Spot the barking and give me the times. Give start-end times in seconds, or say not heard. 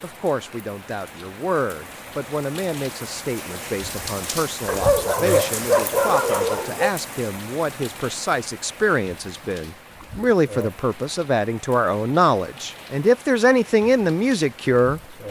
4.7-7.0.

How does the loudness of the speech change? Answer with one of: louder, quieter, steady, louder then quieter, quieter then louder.
louder.